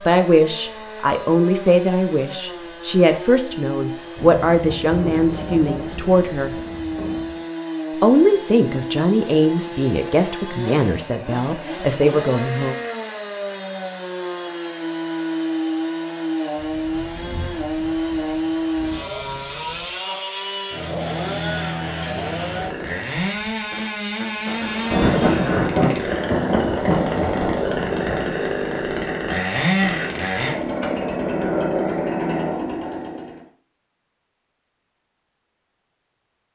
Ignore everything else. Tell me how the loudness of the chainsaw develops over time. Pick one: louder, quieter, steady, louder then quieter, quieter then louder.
louder.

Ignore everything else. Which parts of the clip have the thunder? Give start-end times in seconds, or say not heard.
4.2-7.4, 16.6-19.9, 24.4-28.2.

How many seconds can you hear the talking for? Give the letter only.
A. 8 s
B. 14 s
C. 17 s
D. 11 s
D.